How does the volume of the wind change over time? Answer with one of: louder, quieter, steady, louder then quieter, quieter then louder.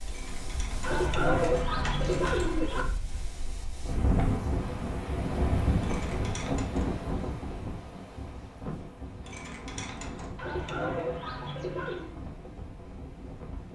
louder then quieter.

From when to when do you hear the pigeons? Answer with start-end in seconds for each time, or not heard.
0.8-2.9, 10.3-12.2.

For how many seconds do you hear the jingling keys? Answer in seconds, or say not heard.
5 s.